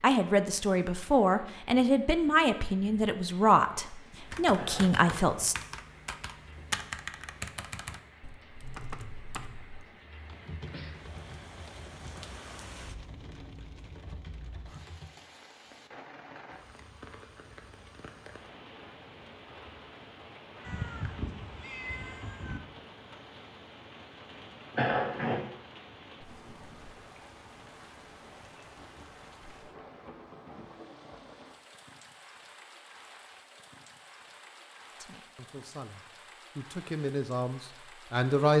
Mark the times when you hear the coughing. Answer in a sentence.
You can hear the coughing from 4.5 to 5.2 s and from 24.7 to 25.4 s.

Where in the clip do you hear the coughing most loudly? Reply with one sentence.
The loudest moment of the coughing is at 25 seconds.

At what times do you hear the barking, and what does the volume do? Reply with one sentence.
The barking can't be heard in this clip.